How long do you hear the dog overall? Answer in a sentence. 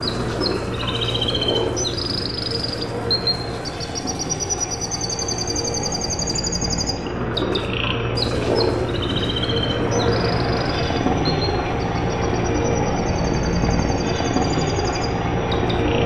You can't hear the dog here.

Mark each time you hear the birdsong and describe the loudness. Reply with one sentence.
The birdsong can be heard from 0.0 to 16.0 s, getting quieter.